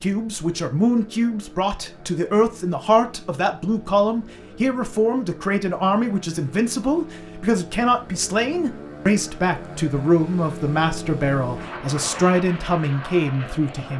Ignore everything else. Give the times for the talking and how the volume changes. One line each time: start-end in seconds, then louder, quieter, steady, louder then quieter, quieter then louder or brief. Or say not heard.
0.0-13.9 steady.